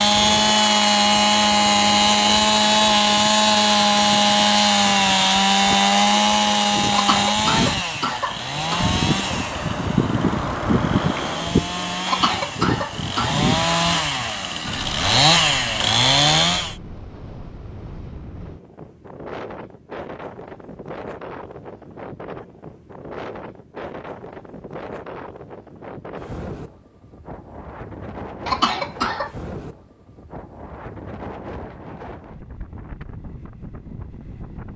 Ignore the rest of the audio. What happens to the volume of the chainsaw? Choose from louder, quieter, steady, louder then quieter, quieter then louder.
quieter then louder.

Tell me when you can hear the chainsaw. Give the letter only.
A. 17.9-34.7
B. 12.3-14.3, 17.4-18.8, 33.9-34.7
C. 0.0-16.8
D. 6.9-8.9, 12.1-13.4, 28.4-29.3
C.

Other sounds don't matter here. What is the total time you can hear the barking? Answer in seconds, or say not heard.
not heard.